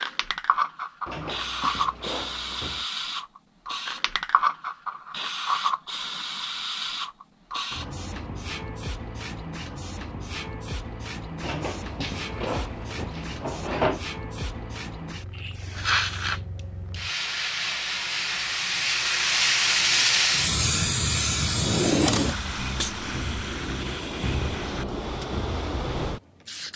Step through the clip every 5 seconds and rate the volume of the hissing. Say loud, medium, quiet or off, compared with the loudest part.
loud, medium, medium, loud, loud, medium.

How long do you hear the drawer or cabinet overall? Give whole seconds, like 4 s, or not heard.
5 s.